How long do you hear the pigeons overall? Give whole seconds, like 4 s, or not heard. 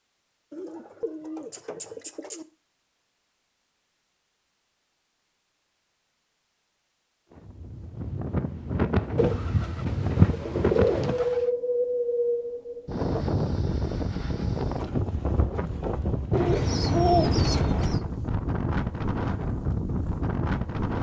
6 s.